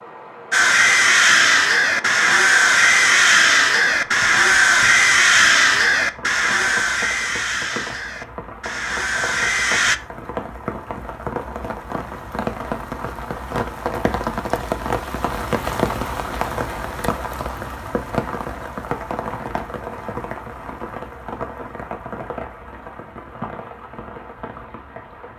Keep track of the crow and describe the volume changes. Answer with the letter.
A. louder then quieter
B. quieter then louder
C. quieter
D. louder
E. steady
C.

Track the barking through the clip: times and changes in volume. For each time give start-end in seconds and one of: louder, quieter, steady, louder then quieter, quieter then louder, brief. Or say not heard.
not heard.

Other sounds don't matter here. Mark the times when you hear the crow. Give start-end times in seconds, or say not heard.
0.5-10.0.